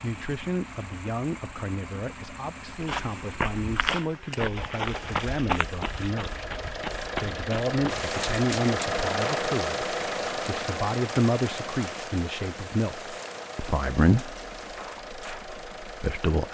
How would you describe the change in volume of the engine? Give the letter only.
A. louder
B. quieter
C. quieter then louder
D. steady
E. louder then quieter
E.